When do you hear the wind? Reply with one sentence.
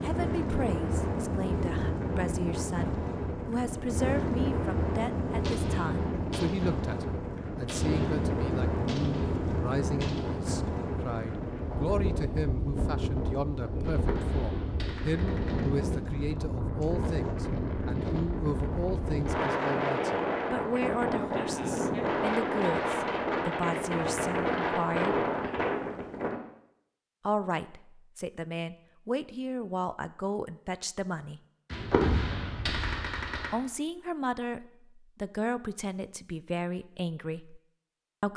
You can hear the wind from 0.0 to 26.4 s.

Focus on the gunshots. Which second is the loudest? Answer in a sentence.
The loudest moment of the gunshots is at 32 seconds.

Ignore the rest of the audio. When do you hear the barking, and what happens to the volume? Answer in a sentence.
You can't hear the barking here.